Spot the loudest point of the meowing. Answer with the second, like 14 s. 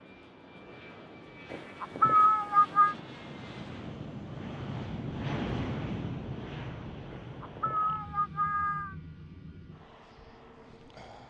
2 s.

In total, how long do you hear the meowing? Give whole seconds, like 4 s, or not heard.
3 s.